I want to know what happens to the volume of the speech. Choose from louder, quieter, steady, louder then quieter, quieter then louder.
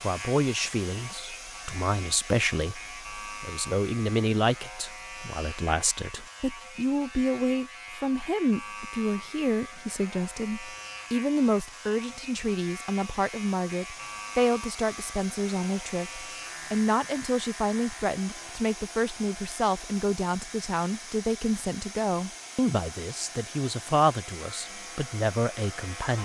steady.